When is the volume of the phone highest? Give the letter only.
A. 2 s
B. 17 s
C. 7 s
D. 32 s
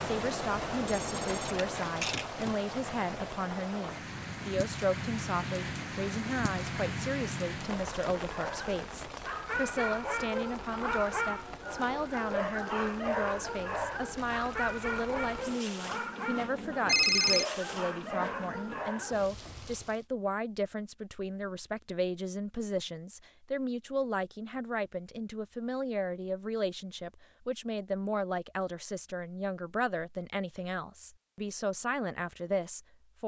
B.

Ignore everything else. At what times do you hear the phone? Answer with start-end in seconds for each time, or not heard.
0.8-2.4, 16.9-17.4.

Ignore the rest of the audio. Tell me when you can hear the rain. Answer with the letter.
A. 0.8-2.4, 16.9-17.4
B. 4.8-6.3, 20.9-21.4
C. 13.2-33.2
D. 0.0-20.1
D.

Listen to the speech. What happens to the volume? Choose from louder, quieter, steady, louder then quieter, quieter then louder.
steady.